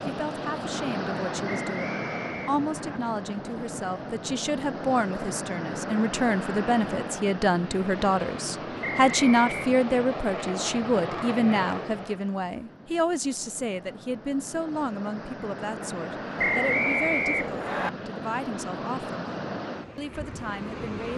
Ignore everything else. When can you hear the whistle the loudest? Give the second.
17 s.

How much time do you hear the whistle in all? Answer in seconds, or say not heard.
4 s.